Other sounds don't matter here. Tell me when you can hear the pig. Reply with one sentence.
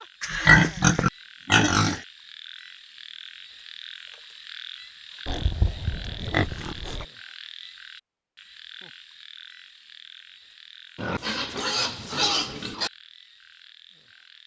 You can hear the pig from 0.2 to 2.0 s, from 5.2 to 7.0 s and from 10.9 to 12.9 s.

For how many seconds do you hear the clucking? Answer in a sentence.
The clucking can't be heard in this clip.